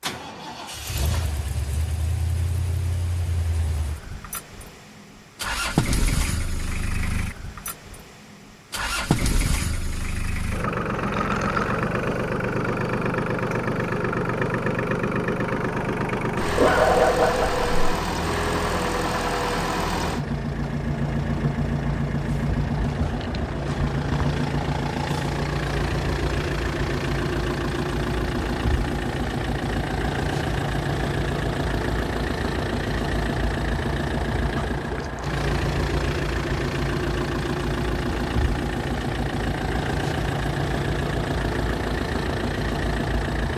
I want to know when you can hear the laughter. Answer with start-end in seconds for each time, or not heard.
not heard.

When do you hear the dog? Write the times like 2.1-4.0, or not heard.
16.4-17.8.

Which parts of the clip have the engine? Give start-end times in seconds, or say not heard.
0.0-43.5.